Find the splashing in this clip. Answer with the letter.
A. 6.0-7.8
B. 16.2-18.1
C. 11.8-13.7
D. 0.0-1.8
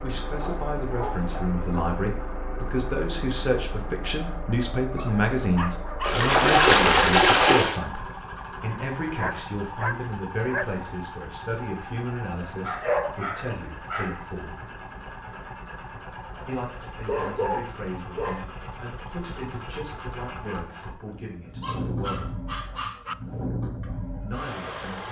A.